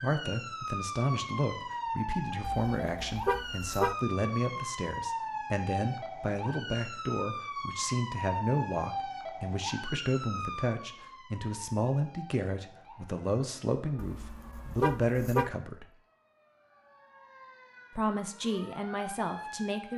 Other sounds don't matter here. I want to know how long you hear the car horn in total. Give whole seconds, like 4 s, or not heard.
3 s.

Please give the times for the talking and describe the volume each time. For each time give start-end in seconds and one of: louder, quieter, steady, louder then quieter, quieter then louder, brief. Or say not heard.
0.0-15.9 steady
17.9-19.9 brief.